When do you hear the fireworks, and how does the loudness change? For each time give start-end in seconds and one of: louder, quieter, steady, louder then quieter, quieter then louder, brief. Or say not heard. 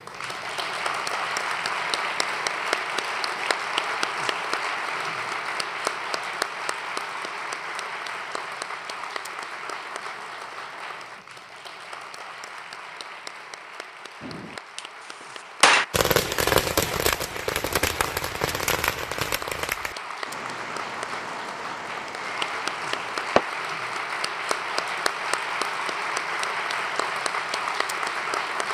14.2-23.4 quieter.